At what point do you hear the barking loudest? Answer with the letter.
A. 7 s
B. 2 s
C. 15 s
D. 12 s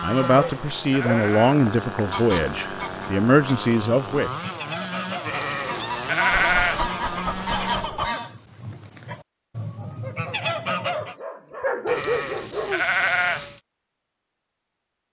D.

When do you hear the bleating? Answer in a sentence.
You can hear the bleating from 0.3 to 1.6 s, from 5.2 to 7.0 s and from 11.8 to 13.6 s.